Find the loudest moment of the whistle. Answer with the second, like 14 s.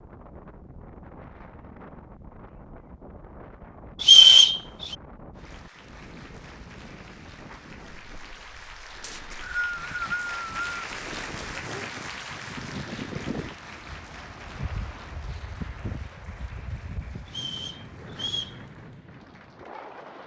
4 s.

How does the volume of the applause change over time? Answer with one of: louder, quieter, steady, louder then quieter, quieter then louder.
louder then quieter.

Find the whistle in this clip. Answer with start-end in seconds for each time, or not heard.
4.0-5.0, 9.0-10.7, 17.2-18.6.